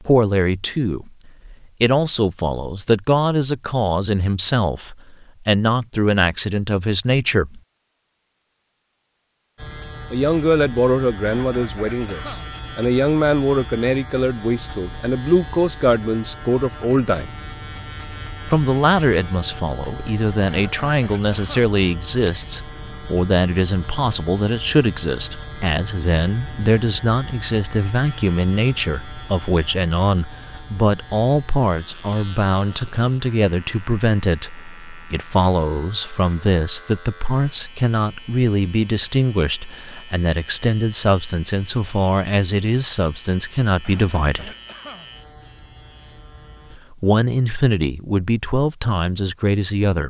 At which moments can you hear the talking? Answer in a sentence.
You can hear the talking from 0.0 to 7.6 s, from 10.1 to 17.3 s, from 18.4 to 44.5 s and from 46.8 to 50.0 s.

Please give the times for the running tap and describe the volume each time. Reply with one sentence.
The running tap can't be heard in this clip.